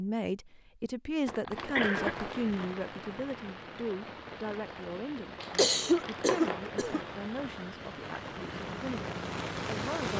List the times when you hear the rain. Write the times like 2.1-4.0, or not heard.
1.5-10.1.